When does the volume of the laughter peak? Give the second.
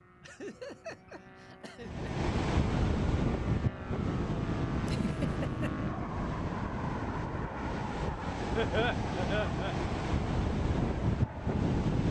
9 s.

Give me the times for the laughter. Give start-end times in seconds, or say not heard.
0.2-2.1, 4.8-5.8, 8.6-9.8.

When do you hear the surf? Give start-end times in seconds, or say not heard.
1.8-12.0.